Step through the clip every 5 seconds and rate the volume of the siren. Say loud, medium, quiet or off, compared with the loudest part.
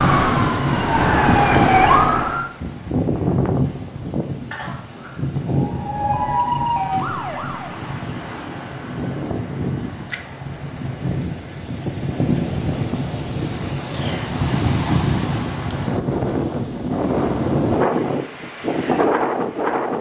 loud, medium, off, off.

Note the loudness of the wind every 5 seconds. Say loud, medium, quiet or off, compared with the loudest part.
loud, medium, loud, loud.